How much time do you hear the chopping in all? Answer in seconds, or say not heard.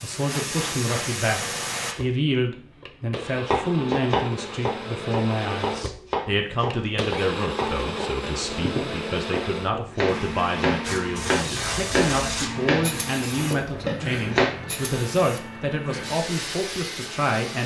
11 s.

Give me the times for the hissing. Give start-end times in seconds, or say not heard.
0.0-1.9, 10.8-17.6.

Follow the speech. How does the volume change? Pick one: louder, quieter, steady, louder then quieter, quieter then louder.
steady.